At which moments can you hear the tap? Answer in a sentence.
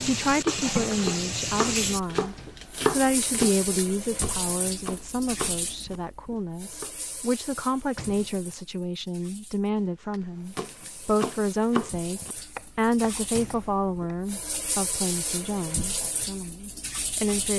The tap can be heard from 0.0 to 17.5 s.